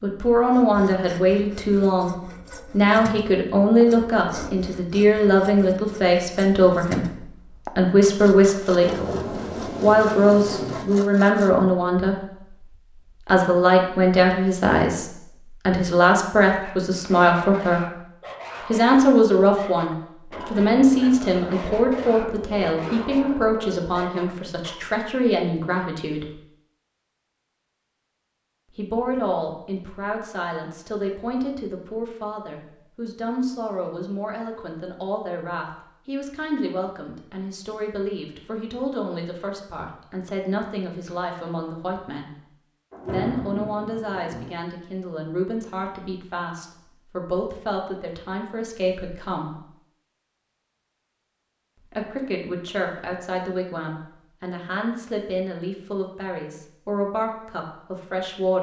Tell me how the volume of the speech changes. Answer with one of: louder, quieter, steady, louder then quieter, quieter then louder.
quieter.